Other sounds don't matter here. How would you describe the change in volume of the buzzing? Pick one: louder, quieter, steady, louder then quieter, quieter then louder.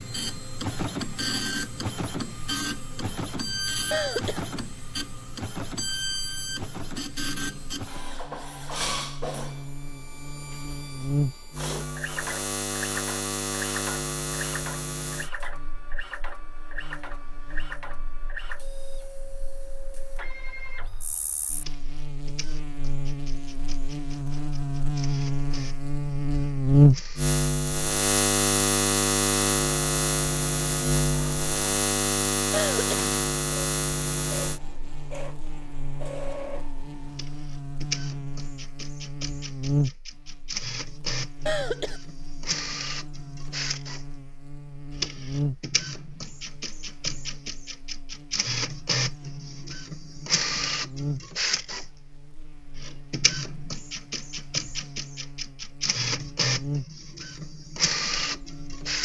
louder then quieter.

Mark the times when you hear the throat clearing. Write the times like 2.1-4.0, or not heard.
3.9-4.5, 32.5-33.0, 41.5-42.0.